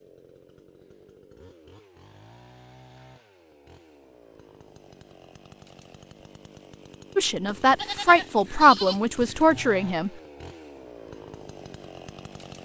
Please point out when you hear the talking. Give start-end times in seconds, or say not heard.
7.2-10.1.